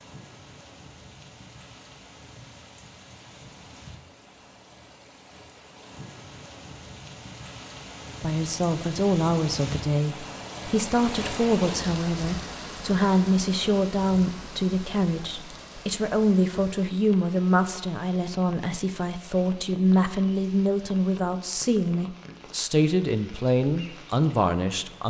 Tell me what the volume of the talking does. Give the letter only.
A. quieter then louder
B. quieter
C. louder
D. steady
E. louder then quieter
D.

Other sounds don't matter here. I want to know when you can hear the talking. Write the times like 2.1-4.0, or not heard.
8.2-25.0.